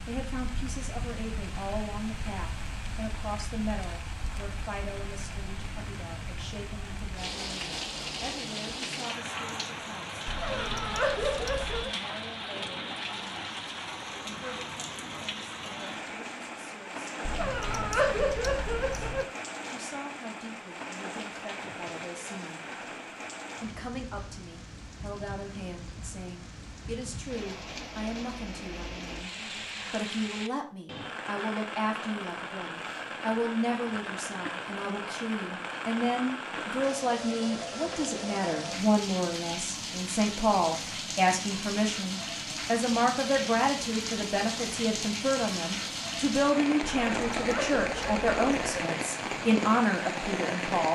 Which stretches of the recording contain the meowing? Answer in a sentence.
You can hear the meowing from 10.2 to 11.9 s, from 17.2 to 19.2 s and from 46.8 to 48.9 s.